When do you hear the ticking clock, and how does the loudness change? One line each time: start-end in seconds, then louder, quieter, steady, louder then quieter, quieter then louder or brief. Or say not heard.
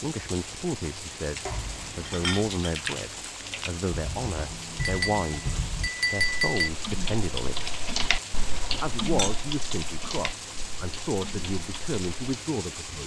not heard.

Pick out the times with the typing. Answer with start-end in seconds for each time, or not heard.
2.5-12.4.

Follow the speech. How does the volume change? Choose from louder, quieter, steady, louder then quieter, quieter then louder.
steady.